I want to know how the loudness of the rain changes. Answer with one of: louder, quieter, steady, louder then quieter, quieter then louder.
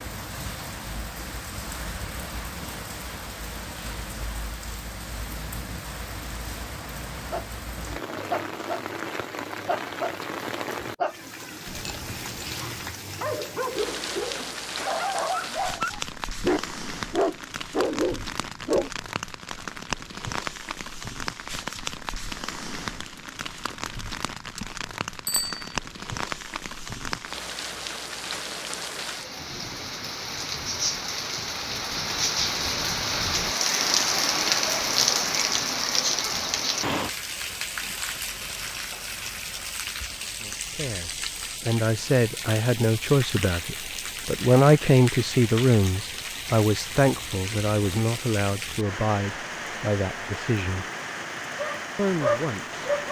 louder then quieter.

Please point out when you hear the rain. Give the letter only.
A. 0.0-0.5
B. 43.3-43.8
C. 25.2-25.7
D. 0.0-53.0
D.